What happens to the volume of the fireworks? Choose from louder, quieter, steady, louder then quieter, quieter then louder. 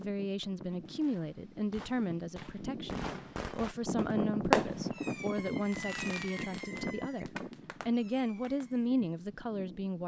louder then quieter.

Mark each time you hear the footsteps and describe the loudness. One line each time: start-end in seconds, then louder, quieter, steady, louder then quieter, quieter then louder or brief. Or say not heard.
not heard.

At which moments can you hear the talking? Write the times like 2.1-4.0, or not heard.
0.0-10.0.